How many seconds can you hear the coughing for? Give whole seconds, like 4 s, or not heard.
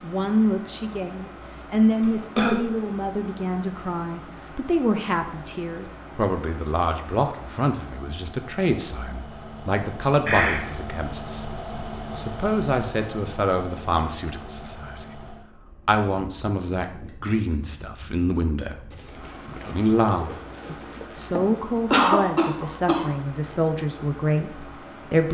2 s.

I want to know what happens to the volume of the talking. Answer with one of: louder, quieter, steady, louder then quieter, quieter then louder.
steady.